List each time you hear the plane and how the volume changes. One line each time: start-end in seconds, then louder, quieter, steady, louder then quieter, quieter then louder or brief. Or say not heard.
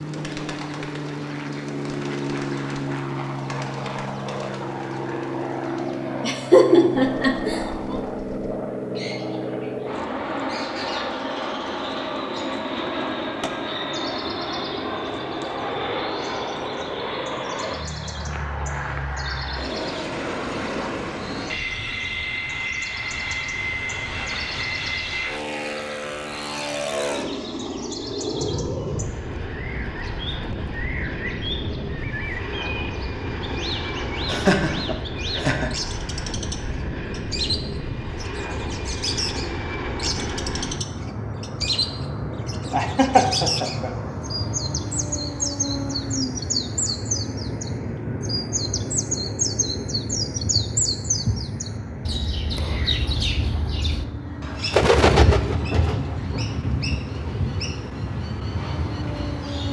0.0-59.6 steady.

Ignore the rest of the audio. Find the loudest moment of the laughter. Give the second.
7 s.